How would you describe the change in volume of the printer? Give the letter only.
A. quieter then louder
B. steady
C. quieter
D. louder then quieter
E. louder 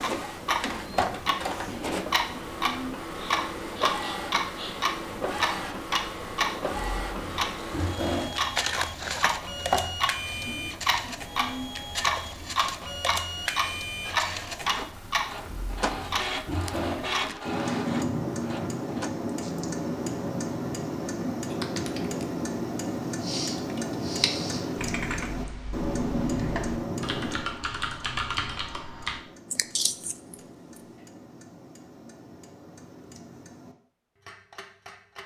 B.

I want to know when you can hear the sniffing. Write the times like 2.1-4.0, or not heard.
3.1-4.8, 23.2-24.6.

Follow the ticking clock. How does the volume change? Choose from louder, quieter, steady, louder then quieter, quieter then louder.
quieter.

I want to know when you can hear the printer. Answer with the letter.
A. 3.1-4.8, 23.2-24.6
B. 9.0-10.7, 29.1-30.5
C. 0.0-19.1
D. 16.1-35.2
C.